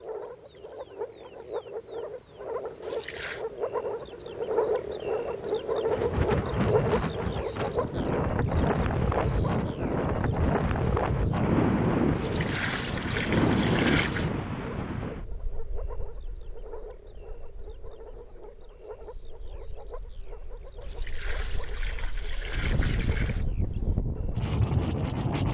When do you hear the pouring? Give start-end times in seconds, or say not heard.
2.8-3.5, 12.2-14.3, 20.8-23.4.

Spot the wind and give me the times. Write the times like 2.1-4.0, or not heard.
5.8-25.4.